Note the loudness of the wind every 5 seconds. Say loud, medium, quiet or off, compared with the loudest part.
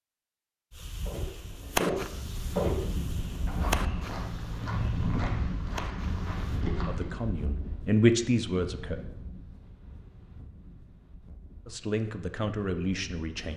loud, loud, quiet.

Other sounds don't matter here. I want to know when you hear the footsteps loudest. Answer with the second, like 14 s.
3 s.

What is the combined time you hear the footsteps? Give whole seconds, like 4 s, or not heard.
6 s.